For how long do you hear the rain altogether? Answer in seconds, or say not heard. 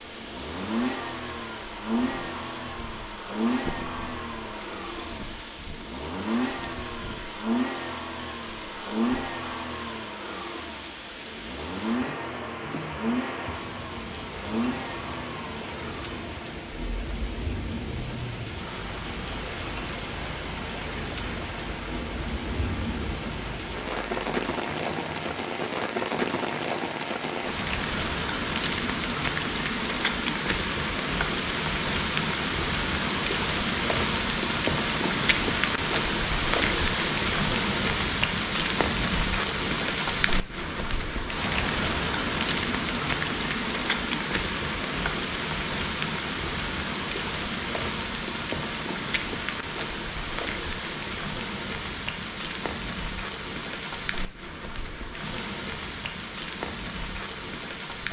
58 s.